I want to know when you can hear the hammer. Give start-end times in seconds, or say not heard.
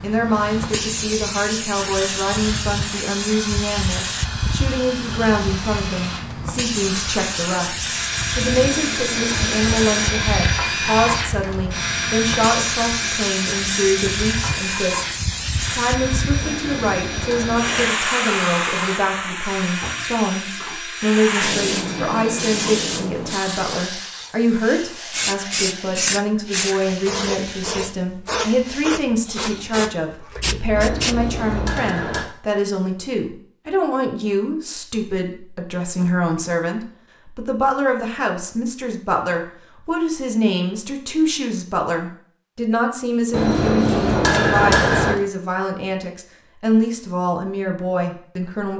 8.4-10.2, 16.4-17.9, 30.8-32.2, 43.3-45.2.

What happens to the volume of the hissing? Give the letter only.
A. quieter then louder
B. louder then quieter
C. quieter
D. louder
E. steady
E.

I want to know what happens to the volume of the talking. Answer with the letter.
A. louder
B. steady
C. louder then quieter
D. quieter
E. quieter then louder
B.